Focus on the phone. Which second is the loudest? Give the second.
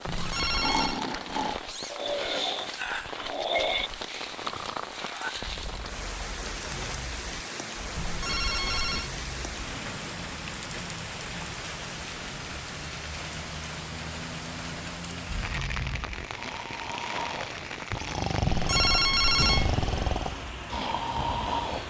19 s.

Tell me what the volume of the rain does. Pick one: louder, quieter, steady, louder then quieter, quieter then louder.
steady.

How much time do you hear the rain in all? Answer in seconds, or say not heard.
22 s.